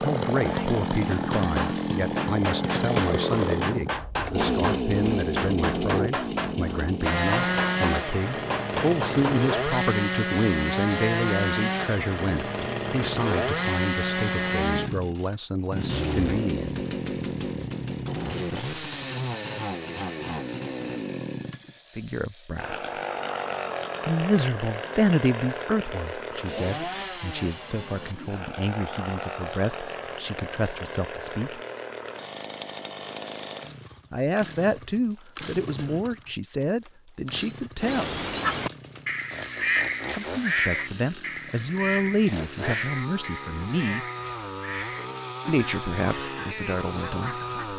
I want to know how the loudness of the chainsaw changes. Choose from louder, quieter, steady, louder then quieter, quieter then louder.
quieter.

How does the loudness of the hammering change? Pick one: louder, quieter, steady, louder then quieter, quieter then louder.
steady.